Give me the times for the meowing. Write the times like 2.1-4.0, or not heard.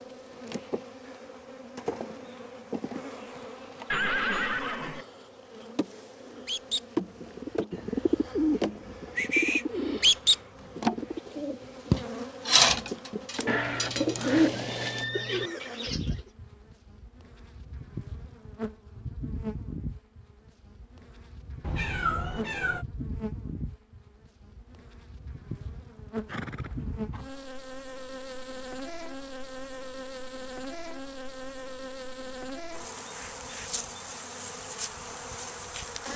21.6-22.9.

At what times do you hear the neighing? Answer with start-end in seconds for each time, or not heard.
3.9-5.0, 13.4-15.5, 26.2-27.2.